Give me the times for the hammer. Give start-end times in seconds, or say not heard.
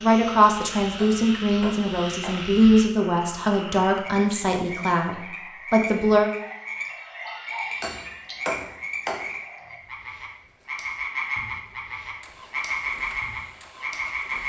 0.9-2.5, 7.8-9.3.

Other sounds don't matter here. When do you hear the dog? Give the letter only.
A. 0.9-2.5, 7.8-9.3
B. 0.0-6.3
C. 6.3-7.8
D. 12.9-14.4
C.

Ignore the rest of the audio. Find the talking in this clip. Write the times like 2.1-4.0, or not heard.
0.0-6.3.